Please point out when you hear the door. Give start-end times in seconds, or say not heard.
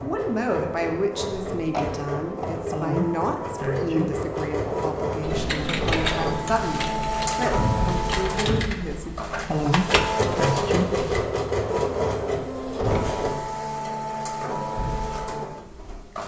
1.7-2.5, 7.5-8.8, 12.8-13.3.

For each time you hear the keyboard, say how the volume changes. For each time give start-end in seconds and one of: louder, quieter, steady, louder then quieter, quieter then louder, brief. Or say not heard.
5.2-11.2 quieter then louder.